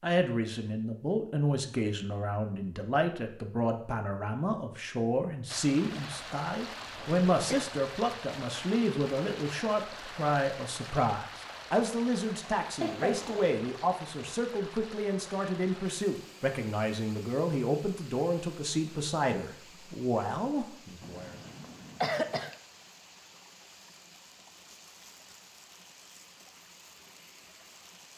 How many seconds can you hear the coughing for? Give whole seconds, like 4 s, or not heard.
3 s.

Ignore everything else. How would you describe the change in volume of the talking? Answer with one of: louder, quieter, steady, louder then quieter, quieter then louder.
steady.